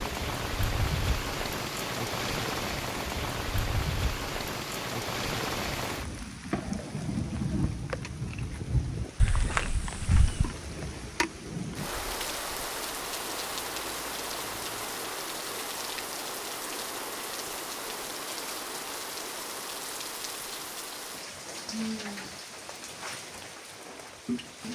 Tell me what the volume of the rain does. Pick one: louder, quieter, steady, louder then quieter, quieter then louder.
quieter.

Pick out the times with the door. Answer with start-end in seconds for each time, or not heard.
9.2-10.6.